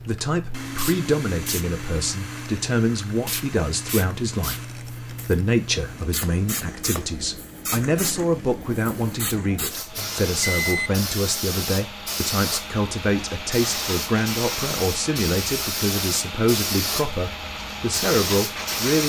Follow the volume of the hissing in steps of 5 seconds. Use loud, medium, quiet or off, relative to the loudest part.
medium, medium, loud, loud.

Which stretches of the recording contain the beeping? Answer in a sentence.
The beeping can be heard from 9.9 to 10.9 s.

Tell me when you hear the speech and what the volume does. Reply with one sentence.
The speech can be heard from 0.1 to 19.0 s, at a steady volume.